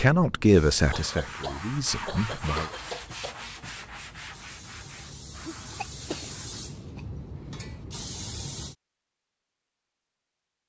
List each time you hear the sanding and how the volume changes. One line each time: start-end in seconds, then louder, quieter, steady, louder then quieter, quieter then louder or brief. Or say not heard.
0.8-6.7 quieter.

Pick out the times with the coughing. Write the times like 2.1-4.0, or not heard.
0.9-3.4, 5.4-6.3.